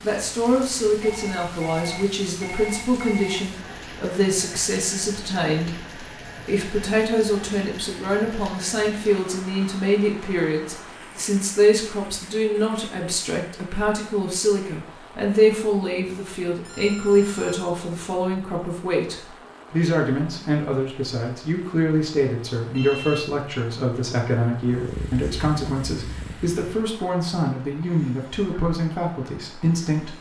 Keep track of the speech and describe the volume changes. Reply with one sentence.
The loudness of the speech stays about the same.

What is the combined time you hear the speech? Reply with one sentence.
You can hear the speech for 30 seconds altogether.